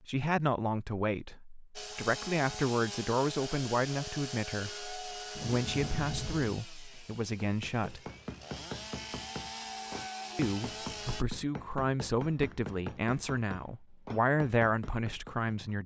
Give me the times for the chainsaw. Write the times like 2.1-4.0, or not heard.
1.8-11.2.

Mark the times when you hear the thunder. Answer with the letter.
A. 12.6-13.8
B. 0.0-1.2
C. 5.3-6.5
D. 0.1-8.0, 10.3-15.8
C.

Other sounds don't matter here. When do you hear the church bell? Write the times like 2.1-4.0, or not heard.
not heard.